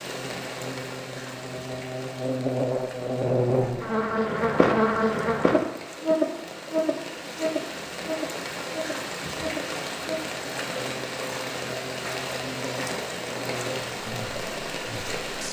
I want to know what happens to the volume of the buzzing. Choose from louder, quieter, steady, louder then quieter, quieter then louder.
louder then quieter.